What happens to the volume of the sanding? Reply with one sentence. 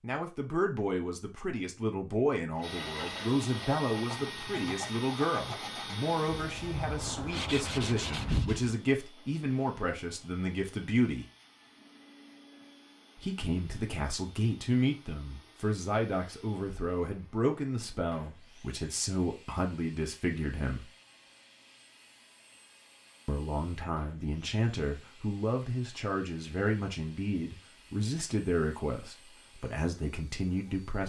The volume of the sanding goes up.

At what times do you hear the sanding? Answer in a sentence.
You can hear the sanding from 2.5 to 8.8 s.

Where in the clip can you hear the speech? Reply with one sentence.
The speech can be heard from 0.0 to 11.2 s, from 13.2 to 20.9 s and from 23.2 to 31.0 s.